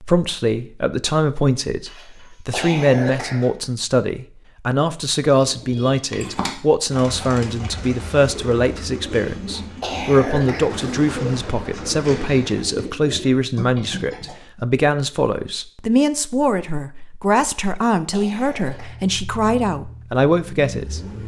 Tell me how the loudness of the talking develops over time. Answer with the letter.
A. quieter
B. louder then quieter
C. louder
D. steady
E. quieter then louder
D.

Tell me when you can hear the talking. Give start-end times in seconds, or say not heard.
0.0-21.0.